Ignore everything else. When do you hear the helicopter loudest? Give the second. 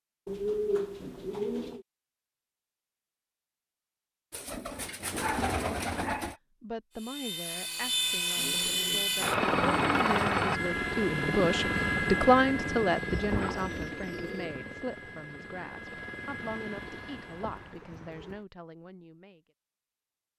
10 s.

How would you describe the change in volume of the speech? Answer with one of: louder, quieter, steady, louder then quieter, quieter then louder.
louder then quieter.